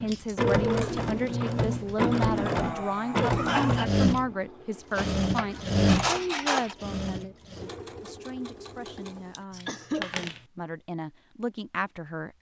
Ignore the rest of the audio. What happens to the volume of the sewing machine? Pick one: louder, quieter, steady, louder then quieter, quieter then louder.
quieter.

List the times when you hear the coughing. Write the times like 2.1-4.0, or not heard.
2.3-3.9, 9.7-10.2.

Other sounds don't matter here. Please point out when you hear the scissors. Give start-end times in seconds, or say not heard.
0.1-2.1, 5.0-6.8, 9.5-10.4.